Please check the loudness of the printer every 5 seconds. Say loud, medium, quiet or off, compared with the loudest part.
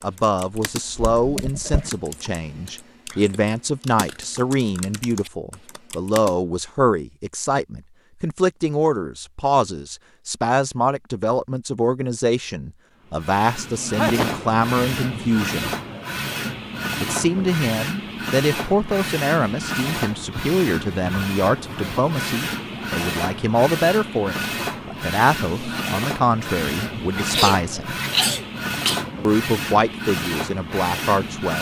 off, off, loud, loud, loud, loud, loud.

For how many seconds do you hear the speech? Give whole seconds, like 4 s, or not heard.
29 s.